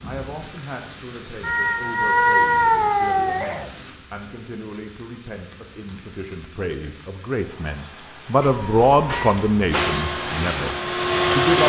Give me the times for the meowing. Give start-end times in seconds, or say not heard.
1.4-3.7, 8.4-9.9.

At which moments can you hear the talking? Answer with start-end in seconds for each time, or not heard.
0.0-11.6.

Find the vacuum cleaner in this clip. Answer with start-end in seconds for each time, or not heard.
9.7-11.6.